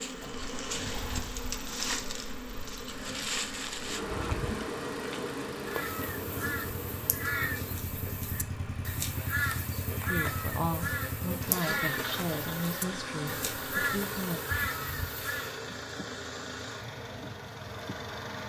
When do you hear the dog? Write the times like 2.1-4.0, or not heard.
not heard.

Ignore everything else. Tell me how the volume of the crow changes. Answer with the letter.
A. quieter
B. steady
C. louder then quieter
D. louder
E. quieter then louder
B.